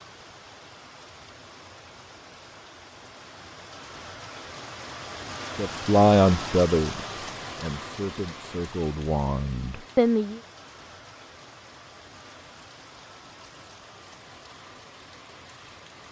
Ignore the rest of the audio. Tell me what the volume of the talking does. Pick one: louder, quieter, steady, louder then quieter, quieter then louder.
quieter then louder.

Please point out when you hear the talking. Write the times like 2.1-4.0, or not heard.
5.5-10.4.